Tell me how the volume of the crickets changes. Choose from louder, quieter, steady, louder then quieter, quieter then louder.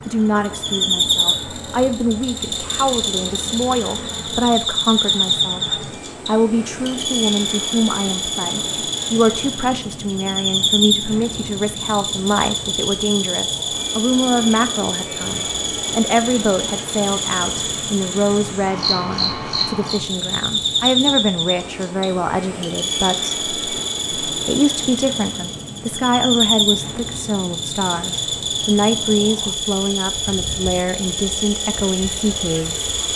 steady.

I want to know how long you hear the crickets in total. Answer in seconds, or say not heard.
33 s.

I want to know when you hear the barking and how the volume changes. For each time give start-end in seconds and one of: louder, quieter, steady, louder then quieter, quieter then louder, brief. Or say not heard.
not heard.